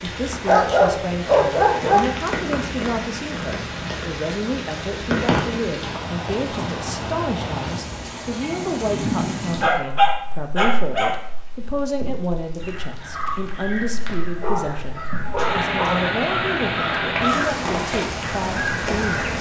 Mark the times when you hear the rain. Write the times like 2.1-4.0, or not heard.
0.0-19.3.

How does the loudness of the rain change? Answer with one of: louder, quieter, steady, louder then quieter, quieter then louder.
quieter then louder.